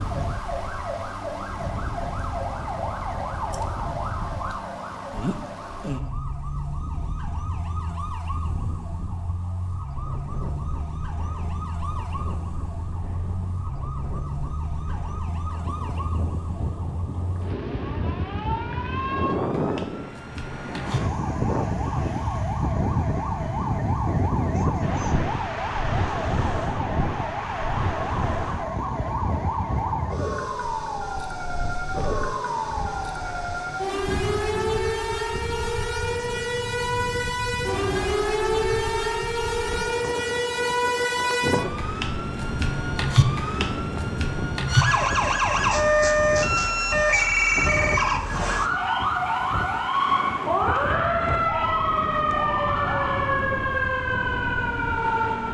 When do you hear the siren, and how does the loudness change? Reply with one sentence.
The siren can be heard from 0.0 to 55.4 s, getting louder.